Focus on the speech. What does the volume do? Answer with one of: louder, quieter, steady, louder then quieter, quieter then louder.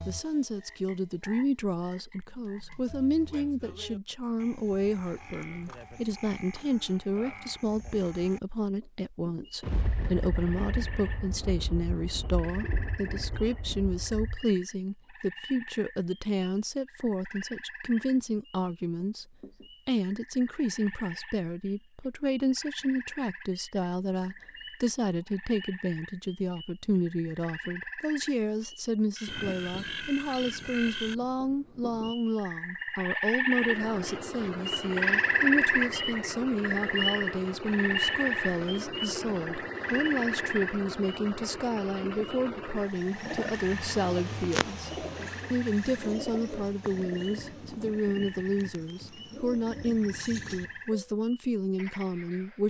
steady.